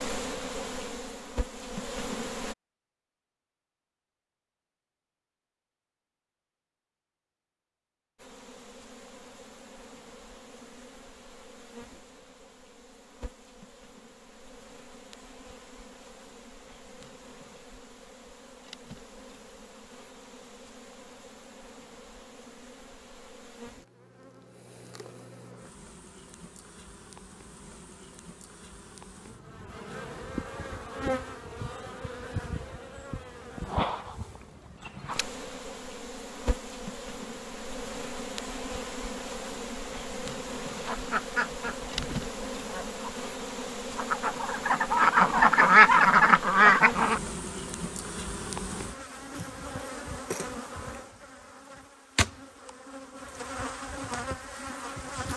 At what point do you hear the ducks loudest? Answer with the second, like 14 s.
46 s.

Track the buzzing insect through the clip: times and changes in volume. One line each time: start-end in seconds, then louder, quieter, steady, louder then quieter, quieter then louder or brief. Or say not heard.
0.0-2.5 brief
8.2-55.3 louder.